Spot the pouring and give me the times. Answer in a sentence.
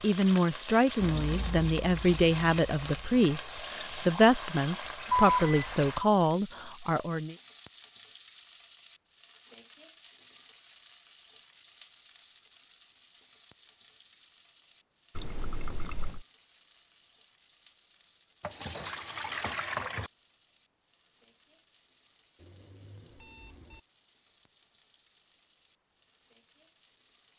You can hear the pouring from 0.9 to 3.2 s, from 15.2 to 16.2 s and from 18.4 to 20.1 s.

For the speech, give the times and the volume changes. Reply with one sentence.
The speech can be heard from 0.0 to 7.3 s, at a steady volume.